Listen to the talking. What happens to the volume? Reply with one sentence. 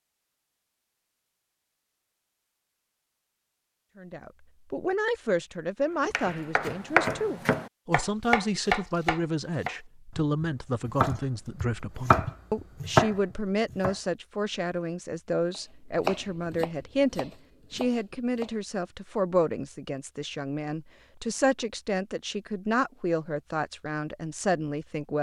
The loudness of the talking stays about the same.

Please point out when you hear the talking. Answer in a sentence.
You can hear the talking from 4.0 to 25.1 s.